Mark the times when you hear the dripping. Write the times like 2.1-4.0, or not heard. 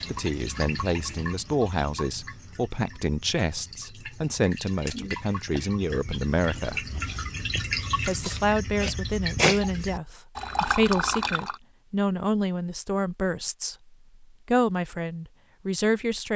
0.0-11.6.